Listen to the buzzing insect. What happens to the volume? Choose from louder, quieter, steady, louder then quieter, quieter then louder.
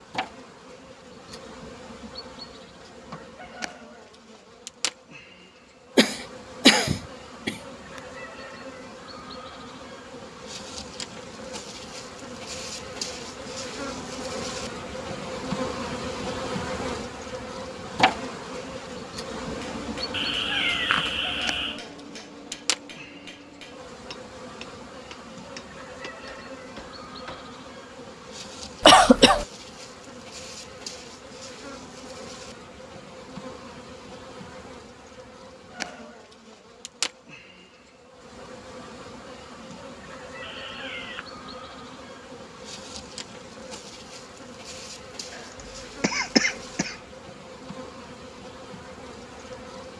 louder then quieter.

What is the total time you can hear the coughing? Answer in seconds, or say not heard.
3 s.